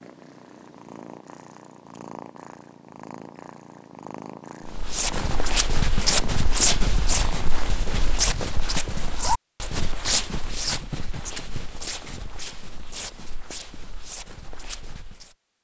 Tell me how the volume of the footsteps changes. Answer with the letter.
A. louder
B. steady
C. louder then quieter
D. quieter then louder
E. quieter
E.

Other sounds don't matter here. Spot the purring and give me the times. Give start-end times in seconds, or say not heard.
0.0-8.2.